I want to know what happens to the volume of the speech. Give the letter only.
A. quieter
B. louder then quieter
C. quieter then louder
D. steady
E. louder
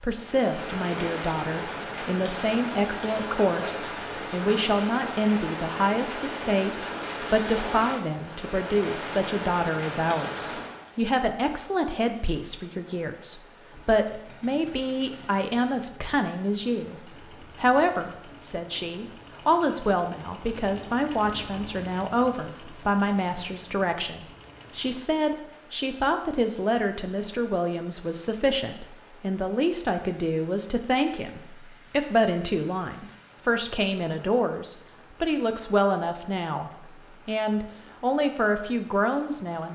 D.